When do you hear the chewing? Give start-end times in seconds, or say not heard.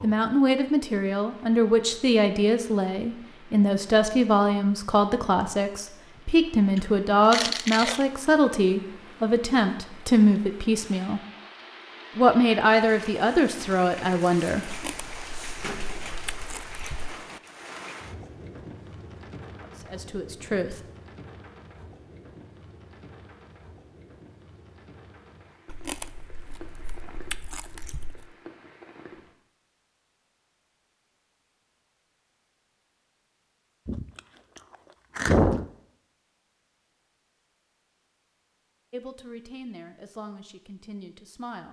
6.8-8.1, 14.7-17.1, 25.6-28.2, 33.9-35.7.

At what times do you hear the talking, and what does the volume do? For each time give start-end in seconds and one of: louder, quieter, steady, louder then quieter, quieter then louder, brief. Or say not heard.
0.0-11.2 steady
12.2-14.7 brief
19.6-20.8 brief
38.9-41.6 brief.